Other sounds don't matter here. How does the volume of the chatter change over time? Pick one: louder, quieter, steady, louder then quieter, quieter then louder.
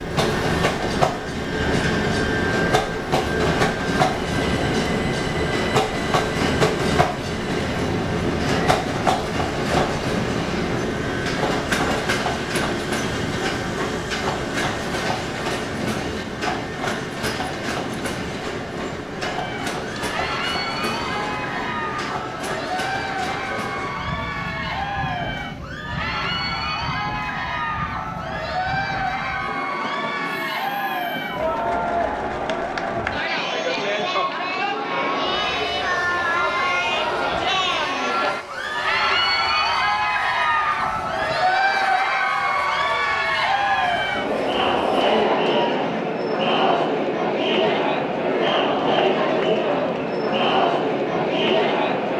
louder.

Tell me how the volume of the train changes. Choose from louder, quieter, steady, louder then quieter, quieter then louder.
quieter.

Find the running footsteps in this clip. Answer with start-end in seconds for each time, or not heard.
not heard.